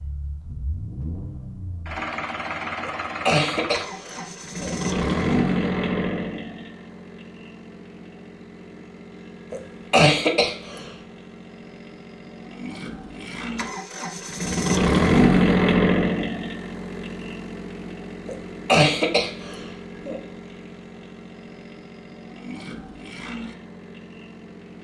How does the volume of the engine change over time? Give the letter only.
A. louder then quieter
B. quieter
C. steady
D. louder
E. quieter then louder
A.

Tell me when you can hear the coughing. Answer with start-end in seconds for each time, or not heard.
2.8-4.8, 9.5-10.9, 18.2-20.2.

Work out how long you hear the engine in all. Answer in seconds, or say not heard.
25 s.